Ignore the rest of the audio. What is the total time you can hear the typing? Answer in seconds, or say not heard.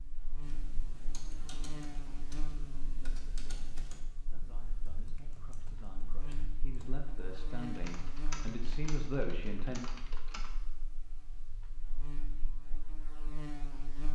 10 s.